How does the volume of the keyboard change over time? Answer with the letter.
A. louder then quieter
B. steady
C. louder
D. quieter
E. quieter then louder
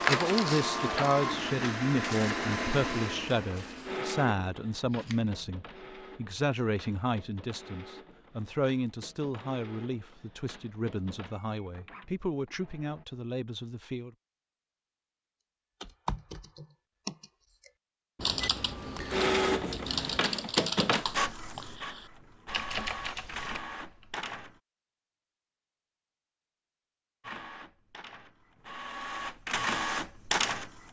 D.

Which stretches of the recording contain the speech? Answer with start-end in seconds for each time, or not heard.
0.1-14.2.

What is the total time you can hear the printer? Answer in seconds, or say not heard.
23 s.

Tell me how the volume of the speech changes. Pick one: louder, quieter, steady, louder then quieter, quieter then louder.
quieter.